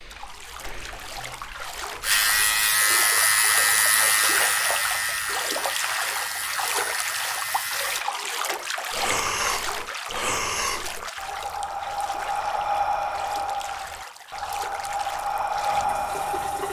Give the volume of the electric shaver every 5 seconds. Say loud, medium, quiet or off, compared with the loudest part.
loud, medium, off, off.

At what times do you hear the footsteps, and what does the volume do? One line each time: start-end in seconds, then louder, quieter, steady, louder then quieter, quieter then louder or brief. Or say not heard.
not heard.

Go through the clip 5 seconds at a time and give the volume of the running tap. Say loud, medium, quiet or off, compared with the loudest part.
loud, loud, medium, medium.